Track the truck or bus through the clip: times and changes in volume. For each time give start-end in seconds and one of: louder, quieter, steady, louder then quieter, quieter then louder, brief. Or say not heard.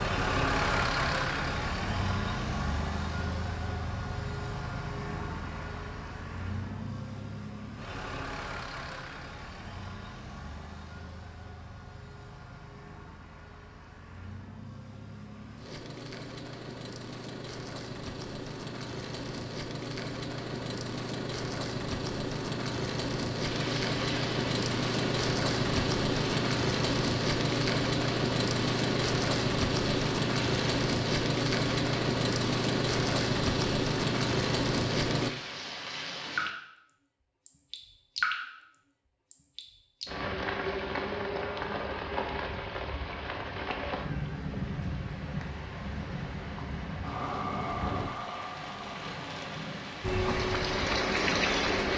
0.0-35.3 quieter then louder
50.0-51.9 brief.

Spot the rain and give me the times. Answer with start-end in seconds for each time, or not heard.
23.3-51.9.